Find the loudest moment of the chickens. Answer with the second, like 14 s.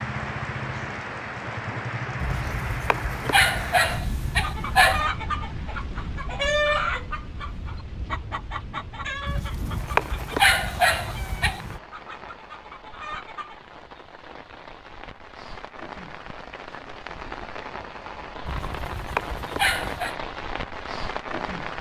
7 s.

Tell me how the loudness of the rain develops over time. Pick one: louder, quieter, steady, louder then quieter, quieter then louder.
quieter then louder.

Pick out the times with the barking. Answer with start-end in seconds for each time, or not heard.
2.1-5.1, 9.2-11.8, 18.4-20.1.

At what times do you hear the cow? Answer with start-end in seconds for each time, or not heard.
not heard.